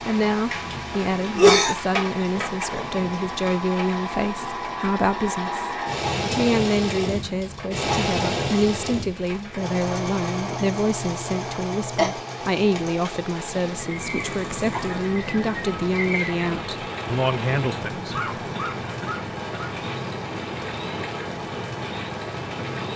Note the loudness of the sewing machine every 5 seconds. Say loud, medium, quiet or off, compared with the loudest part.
medium, loud, medium, medium, medium.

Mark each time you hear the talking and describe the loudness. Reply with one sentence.
The talking can be heard from 0.1 to 18.2 s, at a steady volume.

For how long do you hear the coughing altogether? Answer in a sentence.
You can hear the coughing for 3 seconds altogether.